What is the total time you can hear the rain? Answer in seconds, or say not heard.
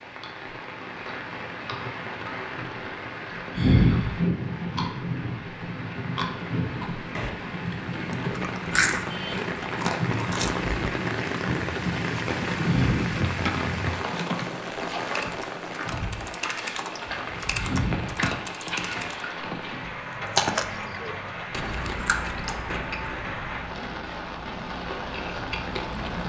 26 s.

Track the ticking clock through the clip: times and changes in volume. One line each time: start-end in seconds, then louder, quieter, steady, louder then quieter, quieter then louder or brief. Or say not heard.
not heard.